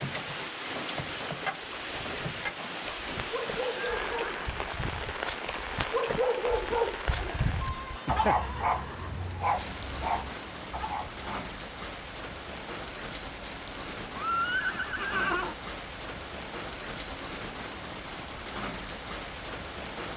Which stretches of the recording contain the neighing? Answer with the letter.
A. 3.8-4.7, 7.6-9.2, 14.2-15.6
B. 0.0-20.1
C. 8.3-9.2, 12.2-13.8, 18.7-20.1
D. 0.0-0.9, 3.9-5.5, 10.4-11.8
A.